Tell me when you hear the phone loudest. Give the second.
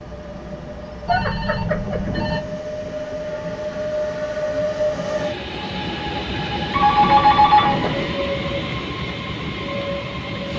7 s.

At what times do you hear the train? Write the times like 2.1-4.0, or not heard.
0.0-10.5.